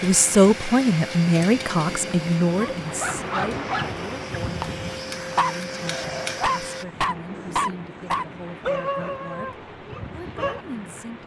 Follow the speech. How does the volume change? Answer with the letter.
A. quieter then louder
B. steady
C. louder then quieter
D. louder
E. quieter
E.